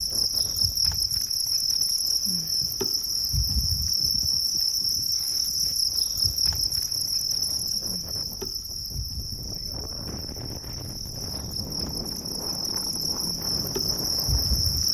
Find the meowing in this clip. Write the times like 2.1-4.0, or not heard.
not heard.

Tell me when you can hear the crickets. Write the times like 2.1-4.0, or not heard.
0.0-14.8.